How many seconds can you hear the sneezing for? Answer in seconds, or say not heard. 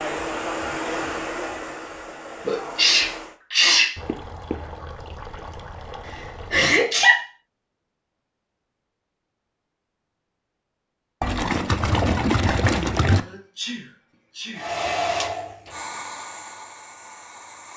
4 s.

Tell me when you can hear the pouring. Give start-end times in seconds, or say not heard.
4.0-6.7, 11.2-13.2.